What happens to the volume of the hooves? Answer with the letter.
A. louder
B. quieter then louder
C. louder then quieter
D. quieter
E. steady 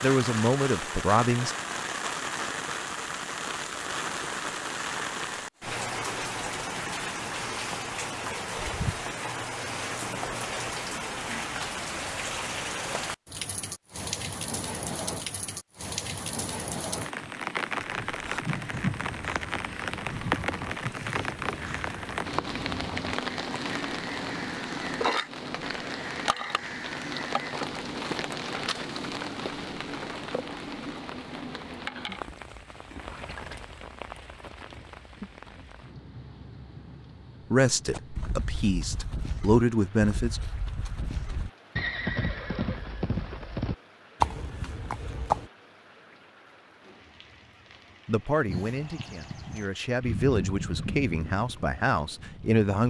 C.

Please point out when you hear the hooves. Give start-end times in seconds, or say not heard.
37.9-45.5, 48.5-52.6.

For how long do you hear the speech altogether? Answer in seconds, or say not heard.
9 s.